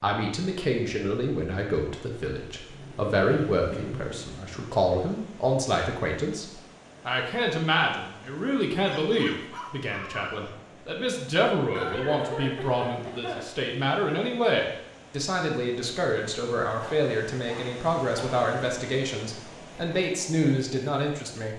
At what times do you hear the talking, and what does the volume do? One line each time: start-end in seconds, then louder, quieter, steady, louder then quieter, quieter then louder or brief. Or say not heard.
0.0-21.5 steady.